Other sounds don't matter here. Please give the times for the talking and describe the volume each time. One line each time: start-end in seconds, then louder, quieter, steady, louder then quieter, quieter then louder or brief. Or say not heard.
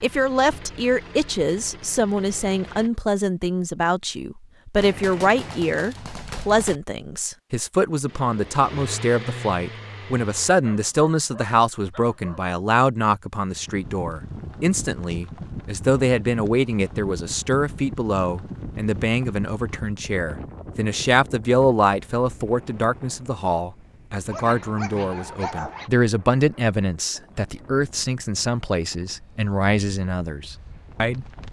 0.0-31.4 steady.